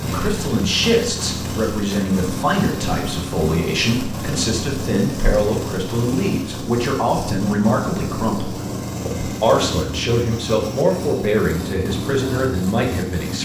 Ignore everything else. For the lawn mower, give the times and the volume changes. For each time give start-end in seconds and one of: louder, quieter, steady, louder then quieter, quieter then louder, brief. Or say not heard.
0.0-13.4 steady.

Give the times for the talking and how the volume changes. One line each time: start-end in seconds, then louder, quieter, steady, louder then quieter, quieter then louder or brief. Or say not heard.
0.0-13.4 steady.